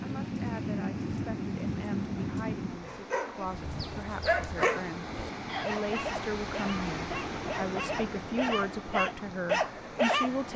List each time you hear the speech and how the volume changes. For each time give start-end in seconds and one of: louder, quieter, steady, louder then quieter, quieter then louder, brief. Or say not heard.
0.0-10.5 louder.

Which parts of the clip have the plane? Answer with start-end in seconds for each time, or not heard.
0.0-2.9.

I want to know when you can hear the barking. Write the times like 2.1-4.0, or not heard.
2.9-10.5.